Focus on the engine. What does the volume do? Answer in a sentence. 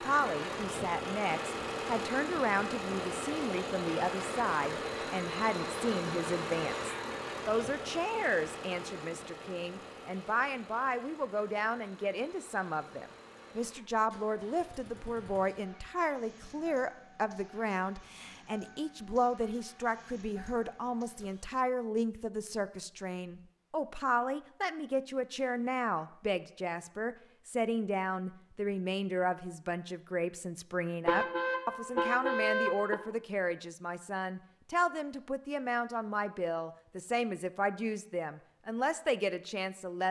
The loudness of the engine goes down.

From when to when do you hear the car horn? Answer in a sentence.
The car horn can be heard from 31.1 to 33.0 s.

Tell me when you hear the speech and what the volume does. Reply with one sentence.
The speech can be heard from 0.0 to 40.0 s, at a steady volume.